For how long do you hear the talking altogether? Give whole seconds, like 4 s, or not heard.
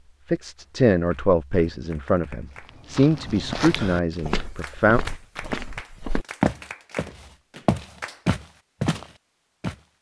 5 s.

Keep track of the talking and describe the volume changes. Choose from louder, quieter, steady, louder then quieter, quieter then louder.
quieter.